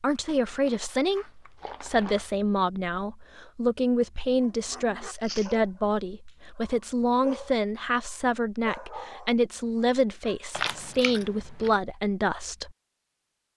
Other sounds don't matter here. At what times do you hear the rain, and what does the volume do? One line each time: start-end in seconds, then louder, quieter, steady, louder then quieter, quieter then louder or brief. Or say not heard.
not heard.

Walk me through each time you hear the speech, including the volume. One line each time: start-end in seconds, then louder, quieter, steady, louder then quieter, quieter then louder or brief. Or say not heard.
0.0-12.7 steady.